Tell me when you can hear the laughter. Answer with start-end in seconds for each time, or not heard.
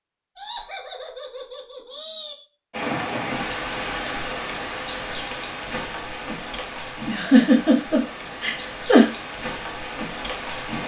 0.3-2.4, 7.0-9.1.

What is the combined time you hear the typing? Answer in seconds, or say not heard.
not heard.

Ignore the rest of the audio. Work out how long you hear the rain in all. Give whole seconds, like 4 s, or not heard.
8 s.